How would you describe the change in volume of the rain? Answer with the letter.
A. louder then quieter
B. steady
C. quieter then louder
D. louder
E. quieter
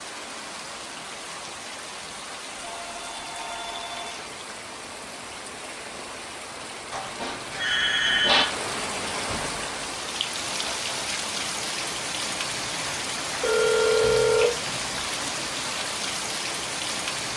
D.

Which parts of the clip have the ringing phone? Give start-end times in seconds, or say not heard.
2.5-4.2, 6.9-8.4, 13.4-15.0.